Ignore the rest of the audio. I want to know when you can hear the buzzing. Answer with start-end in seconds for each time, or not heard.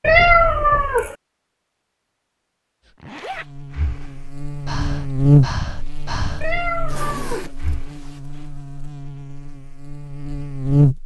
3.4-11.0.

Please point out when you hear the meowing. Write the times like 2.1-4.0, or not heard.
0.0-1.1, 6.4-7.5.